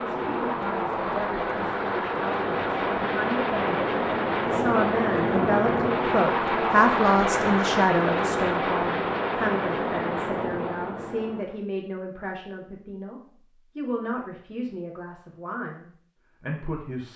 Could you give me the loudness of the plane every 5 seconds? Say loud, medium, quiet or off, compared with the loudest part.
loud, loud, medium, off.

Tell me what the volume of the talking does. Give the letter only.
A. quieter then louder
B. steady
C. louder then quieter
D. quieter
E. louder
C.